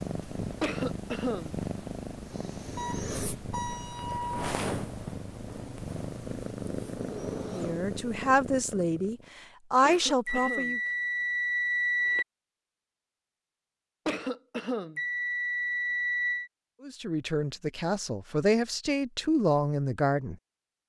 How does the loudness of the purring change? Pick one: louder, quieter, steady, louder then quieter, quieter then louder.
steady.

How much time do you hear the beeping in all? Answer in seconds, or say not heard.
5 s.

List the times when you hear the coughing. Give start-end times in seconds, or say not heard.
0.6-1.6, 9.8-10.8, 14.1-15.0.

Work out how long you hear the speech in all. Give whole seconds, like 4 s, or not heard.
7 s.